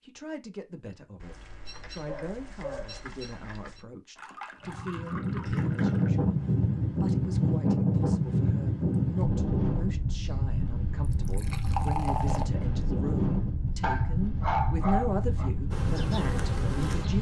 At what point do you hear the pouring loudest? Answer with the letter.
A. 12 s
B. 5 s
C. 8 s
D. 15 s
A.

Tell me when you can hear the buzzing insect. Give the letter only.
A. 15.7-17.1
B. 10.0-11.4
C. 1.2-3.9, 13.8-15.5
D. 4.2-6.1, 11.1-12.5
A.